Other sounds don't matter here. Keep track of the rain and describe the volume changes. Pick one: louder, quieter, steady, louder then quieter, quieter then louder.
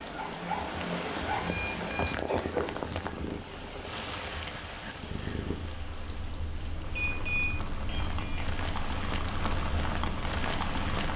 quieter then louder.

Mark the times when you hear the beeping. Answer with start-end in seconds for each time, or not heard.
1.3-2.3, 7.0-8.4.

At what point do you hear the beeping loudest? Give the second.
2 s.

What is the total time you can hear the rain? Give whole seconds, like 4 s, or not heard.
11 s.